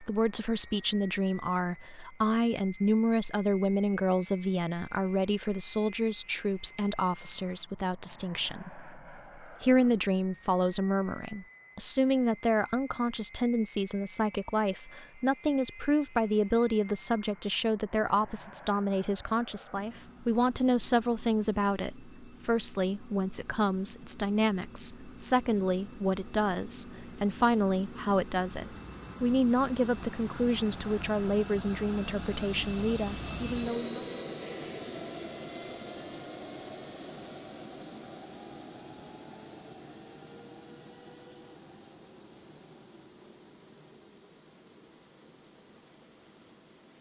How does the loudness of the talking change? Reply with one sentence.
The loudness of the talking stays about the same.